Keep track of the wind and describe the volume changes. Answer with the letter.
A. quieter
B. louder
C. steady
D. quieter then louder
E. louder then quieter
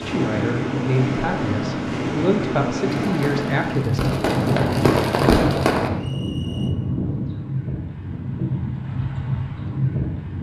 C.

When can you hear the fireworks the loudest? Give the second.
5 s.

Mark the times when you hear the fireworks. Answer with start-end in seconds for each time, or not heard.
3.0-5.9.